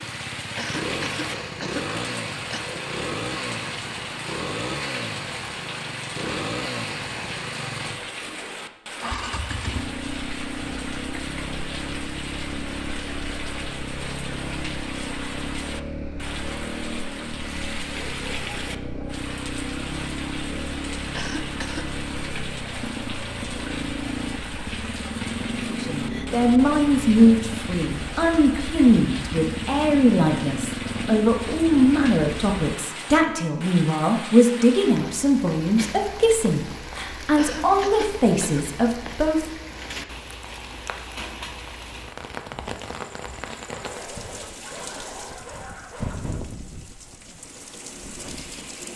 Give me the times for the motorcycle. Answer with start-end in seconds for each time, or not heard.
0.0-32.6.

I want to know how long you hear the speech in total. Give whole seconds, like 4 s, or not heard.
14 s.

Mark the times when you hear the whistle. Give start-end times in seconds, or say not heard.
not heard.